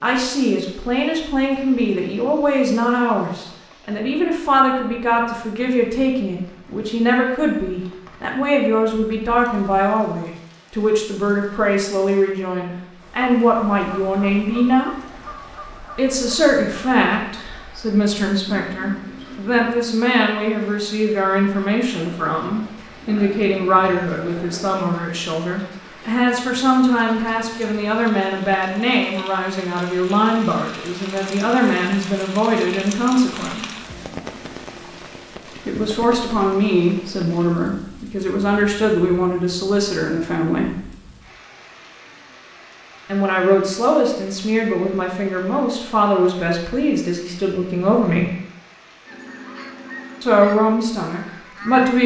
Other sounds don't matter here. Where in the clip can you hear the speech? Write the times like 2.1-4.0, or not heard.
0.0-14.9, 15.9-33.6, 35.6-40.9, 43.0-48.3, 50.2-52.0.